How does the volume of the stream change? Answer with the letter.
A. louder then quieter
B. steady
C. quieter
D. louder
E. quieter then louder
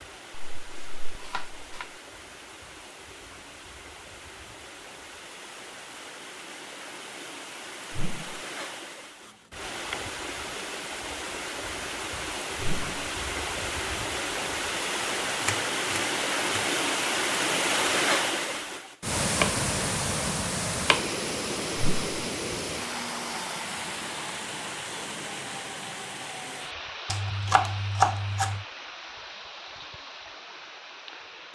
A.